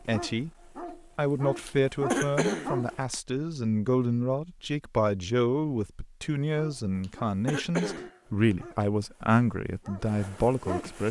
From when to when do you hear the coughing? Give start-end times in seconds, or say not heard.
1.6-3.1, 7.0-8.6.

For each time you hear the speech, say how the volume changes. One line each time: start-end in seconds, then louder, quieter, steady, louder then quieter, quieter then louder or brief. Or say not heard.
0.1-0.5 brief
1.1-11.0 steady.